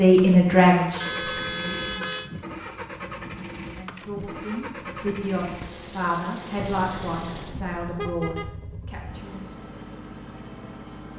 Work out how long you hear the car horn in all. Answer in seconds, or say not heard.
3 s.